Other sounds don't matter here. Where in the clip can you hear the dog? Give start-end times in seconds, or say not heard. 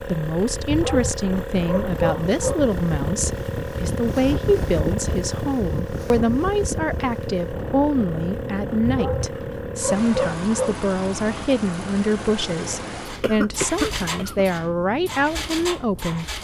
0.7-2.6, 8.8-10.8.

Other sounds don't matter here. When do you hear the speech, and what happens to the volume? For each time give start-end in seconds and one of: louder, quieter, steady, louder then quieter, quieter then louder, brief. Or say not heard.
0.1-16.3 steady.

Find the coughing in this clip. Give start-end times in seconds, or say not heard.
13.2-14.4.